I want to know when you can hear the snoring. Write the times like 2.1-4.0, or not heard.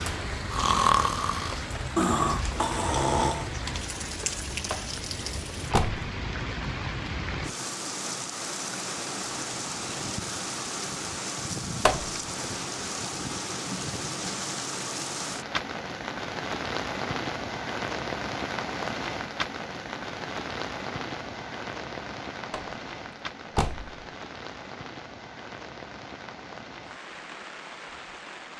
0.0-3.5.